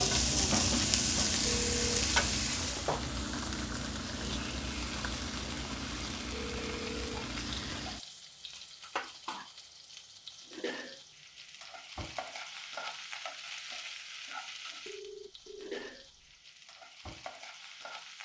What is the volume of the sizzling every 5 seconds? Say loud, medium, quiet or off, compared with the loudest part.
loud, medium, quiet, quiet.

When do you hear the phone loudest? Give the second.
2 s.